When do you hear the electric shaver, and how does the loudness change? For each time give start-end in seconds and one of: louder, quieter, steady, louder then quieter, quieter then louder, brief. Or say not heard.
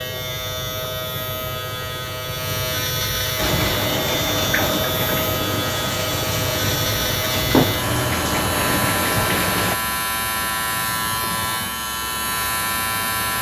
0.0-13.3 steady.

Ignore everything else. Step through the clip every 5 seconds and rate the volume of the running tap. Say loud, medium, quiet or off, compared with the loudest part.
loud, loud, off.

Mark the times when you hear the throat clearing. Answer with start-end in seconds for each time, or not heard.
not heard.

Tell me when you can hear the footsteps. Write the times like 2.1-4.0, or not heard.
not heard.